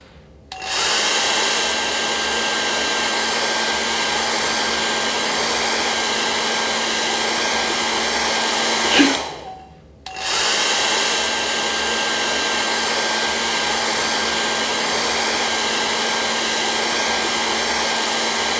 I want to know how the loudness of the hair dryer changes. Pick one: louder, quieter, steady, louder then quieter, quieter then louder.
steady.